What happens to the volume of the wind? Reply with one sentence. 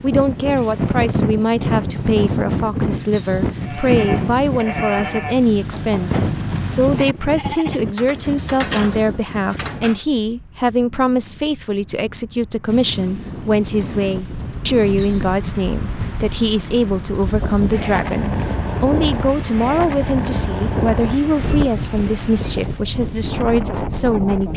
The loudness of the wind goes down, then up.